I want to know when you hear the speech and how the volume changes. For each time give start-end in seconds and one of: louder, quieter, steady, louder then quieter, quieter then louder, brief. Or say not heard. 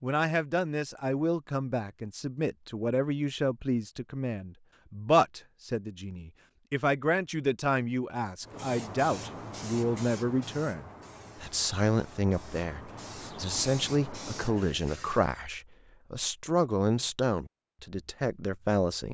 0.0-19.0 steady.